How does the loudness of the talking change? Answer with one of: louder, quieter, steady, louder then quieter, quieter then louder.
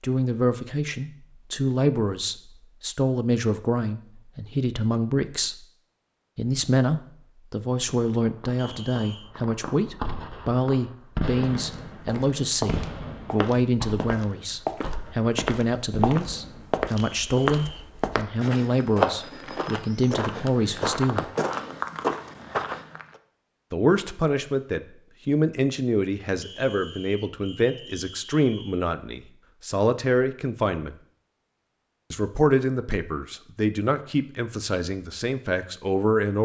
steady.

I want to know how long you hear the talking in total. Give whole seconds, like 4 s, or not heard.
32 s.